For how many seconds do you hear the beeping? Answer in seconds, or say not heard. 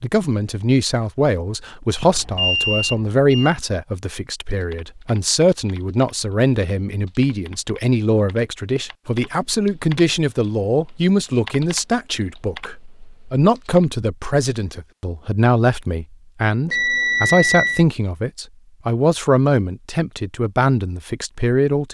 3 s.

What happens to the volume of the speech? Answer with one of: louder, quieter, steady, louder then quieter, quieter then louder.
steady.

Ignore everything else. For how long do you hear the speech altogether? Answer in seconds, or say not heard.
22 s.